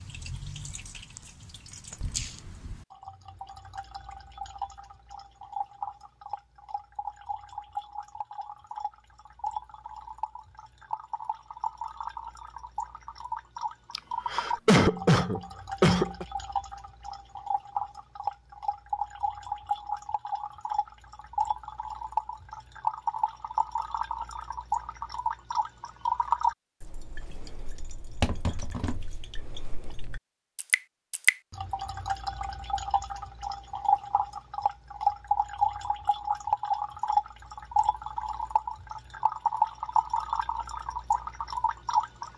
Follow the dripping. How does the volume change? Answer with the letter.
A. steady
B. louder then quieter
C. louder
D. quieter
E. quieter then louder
C.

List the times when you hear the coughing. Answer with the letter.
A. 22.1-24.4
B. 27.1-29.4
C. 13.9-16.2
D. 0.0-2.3
C.